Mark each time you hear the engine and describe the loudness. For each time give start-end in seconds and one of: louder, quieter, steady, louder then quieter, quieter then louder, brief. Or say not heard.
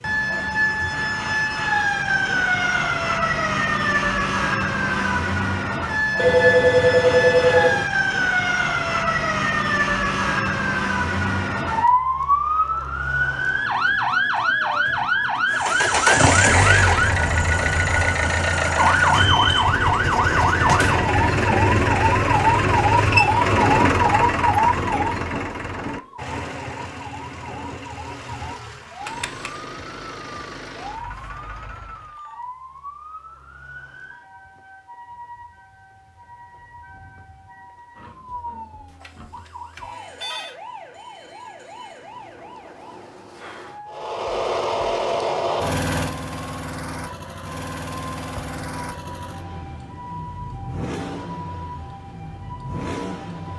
15.5-32.2 quieter
43.9-53.5 quieter.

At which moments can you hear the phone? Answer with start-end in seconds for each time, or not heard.
6.2-7.8, 29.1-29.5, 39.0-40.5.